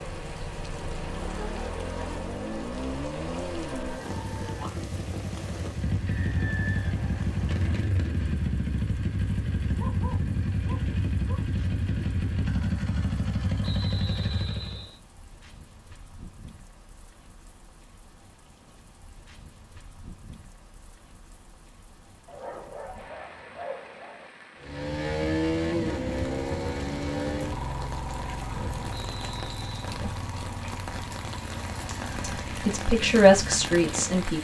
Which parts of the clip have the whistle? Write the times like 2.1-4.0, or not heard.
6.0-7.8, 13.6-15.0, 28.9-29.8.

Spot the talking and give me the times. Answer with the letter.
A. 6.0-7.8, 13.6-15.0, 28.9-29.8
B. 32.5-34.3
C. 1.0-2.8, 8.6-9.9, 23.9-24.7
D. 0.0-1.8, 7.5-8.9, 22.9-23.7
B.